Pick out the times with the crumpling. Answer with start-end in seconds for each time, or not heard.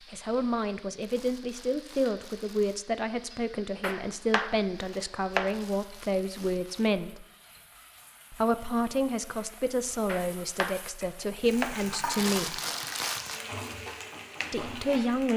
1.0-2.9, 5.5-6.9, 12.1-13.4.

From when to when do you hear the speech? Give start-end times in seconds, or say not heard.
0.1-7.2, 8.3-12.6, 14.5-15.3.